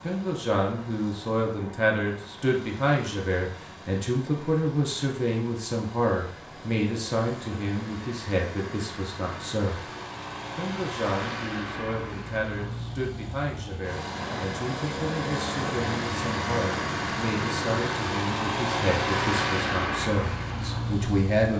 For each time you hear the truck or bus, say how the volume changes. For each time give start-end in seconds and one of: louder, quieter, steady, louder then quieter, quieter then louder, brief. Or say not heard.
0.0-21.5 louder.